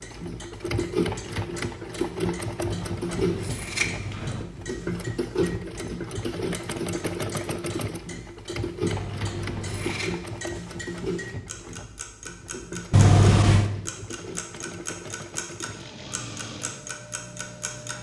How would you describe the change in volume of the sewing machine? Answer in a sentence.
The loudness of the sewing machine goes down.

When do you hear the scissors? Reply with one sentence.
The scissors can be heard from 2.5 to 4.5 s, from 8.8 to 10.1 s and from 12.9 to 13.7 s.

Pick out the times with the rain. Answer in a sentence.
The rain can't be heard in this clip.